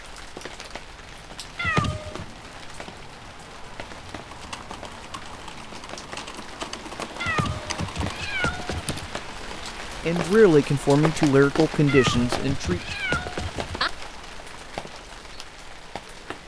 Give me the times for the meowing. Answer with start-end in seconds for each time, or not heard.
1.6-2.2, 7.2-9.1, 11.8-13.9.